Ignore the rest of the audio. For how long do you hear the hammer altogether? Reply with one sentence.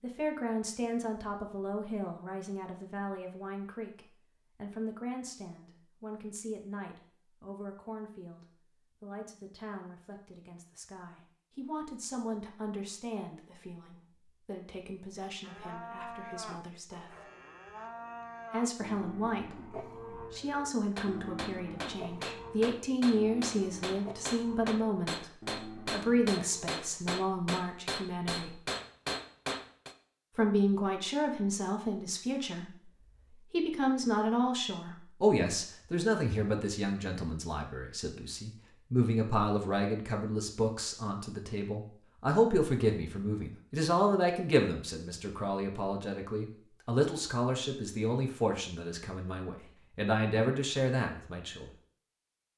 You can hear the hammer for 9 seconds altogether.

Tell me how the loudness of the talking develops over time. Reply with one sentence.
The loudness of the talking goes up.